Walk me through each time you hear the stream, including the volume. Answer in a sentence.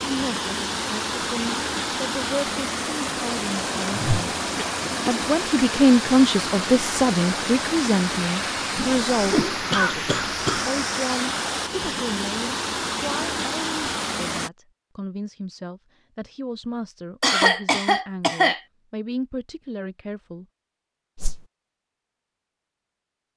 You can hear the stream from 0.0 to 14.5 s, at a steady volume.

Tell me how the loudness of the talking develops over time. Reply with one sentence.
The volume of the talking goes up, then down.